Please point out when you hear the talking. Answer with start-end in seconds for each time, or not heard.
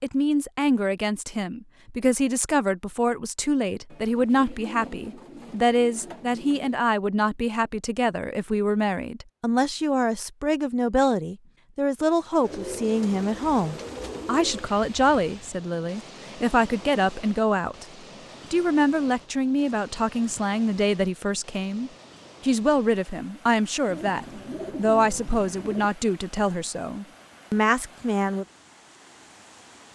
0.0-17.9, 18.5-28.4.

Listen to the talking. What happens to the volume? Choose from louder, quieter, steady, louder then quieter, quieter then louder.
steady.